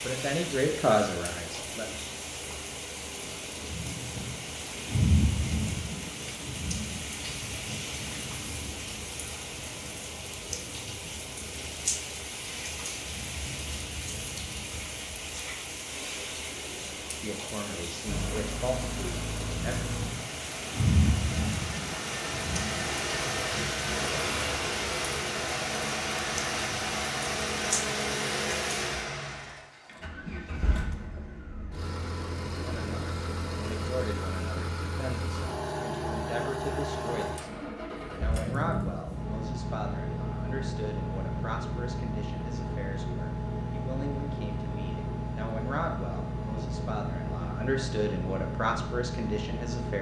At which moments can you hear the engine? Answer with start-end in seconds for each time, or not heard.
18.1-49.9.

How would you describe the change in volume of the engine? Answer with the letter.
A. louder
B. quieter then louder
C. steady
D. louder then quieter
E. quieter
C.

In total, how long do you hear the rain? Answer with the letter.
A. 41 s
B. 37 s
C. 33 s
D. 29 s
D.